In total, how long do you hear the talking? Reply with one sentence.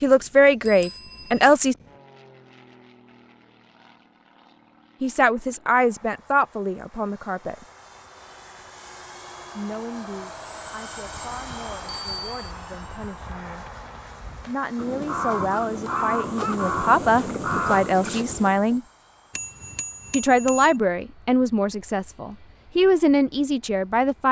The talking can be heard for 17 seconds in total.